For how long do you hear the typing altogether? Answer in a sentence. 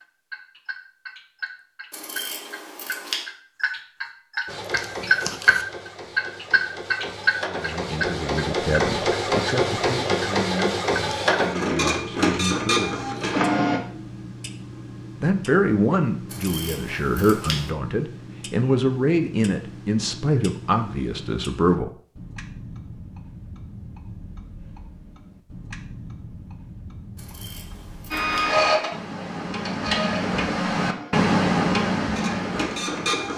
The typing can't be heard in this clip.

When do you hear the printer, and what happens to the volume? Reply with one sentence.
You can hear the printer from 4.5 to 13.8 s, getting louder; and from 28.1 to 33.3 s, getting quieter then louder.